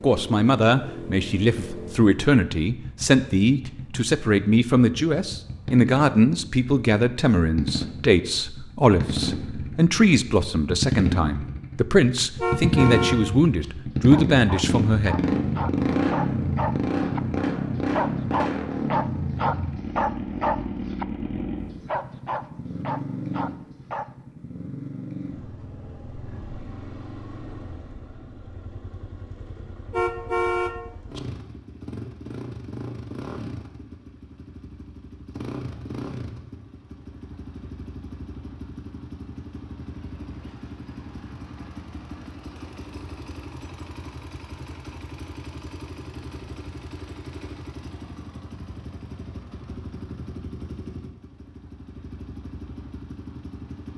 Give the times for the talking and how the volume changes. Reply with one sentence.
You can hear the talking from 0.0 to 15.2 s, at a steady volume.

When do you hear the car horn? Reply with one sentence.
The car horn can be heard from 12.3 to 13.7 s and from 29.9 to 31.2 s.